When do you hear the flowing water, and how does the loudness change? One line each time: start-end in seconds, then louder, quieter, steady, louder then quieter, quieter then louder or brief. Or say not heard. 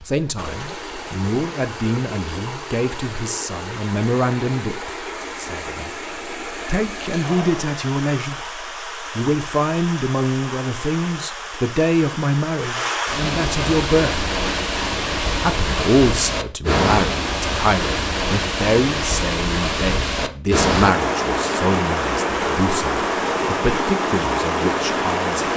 0.0-25.5 louder.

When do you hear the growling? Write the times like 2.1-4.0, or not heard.
not heard.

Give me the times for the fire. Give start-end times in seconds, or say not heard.
not heard.